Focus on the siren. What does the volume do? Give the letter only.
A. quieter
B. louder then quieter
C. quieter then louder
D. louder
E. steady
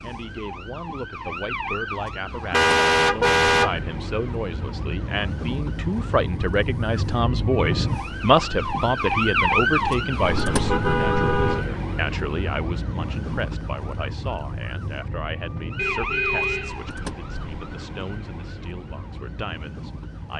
B.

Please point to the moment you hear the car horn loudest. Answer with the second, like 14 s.
3 s.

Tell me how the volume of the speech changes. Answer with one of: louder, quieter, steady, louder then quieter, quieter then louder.
louder then quieter.